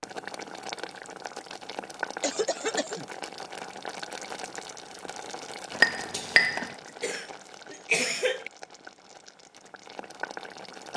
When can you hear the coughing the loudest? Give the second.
8 s.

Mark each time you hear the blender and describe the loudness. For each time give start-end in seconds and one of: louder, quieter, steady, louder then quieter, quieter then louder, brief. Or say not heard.
not heard.